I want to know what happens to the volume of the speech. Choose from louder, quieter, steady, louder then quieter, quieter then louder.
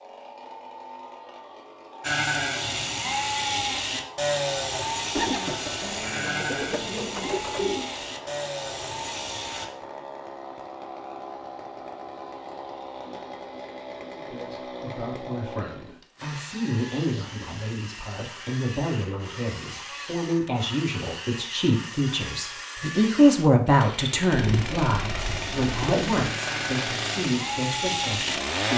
louder then quieter.